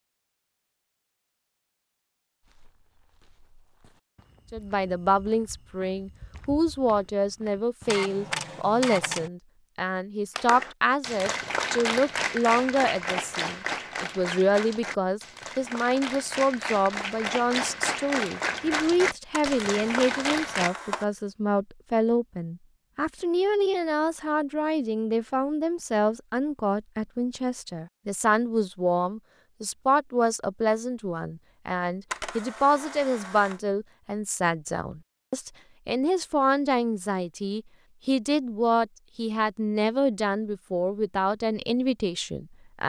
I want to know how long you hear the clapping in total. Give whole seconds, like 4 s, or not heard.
10 s.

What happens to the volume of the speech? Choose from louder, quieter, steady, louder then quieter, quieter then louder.
steady.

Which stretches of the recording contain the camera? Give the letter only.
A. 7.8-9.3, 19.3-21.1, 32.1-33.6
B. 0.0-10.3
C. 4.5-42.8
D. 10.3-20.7
A.